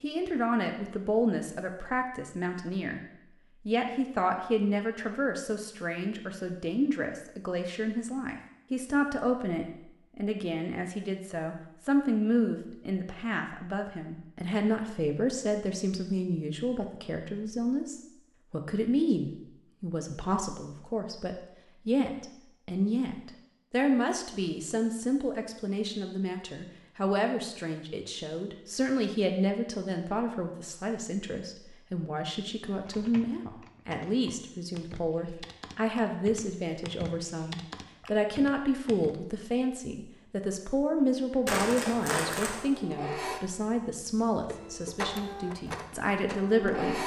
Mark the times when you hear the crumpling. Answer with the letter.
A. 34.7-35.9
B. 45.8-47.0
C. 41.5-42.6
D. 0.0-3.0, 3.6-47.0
C.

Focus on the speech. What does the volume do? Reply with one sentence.
The volume of the speech stays about the same.